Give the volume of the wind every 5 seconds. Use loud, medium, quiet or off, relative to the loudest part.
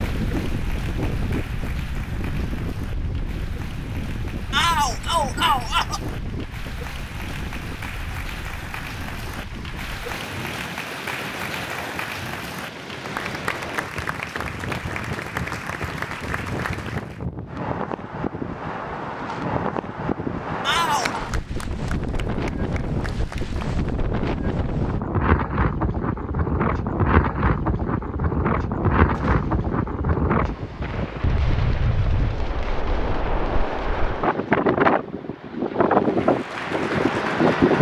medium, quiet, quiet, medium, medium, loud, loud, loud.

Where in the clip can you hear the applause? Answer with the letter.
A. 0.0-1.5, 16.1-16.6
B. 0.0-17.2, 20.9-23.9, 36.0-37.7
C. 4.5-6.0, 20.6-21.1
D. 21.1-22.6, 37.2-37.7
B.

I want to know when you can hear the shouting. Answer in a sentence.
You can hear the shouting from 4.5 to 6.0 s and from 20.6 to 21.1 s.